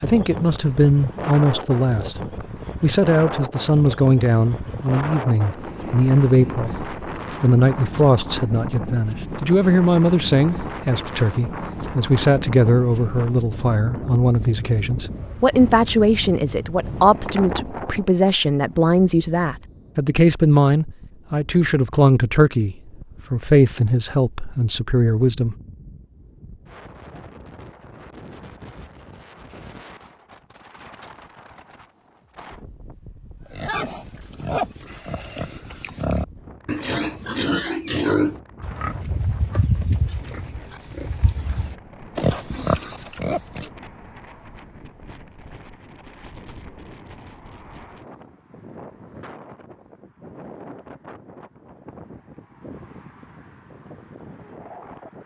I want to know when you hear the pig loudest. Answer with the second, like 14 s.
38 s.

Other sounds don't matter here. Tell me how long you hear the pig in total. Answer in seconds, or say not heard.
10 s.